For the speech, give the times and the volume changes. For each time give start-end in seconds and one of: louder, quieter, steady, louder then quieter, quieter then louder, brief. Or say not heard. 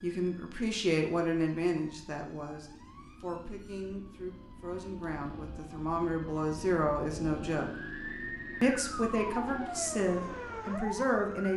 0.0-7.7 quieter then louder
8.6-11.5 brief.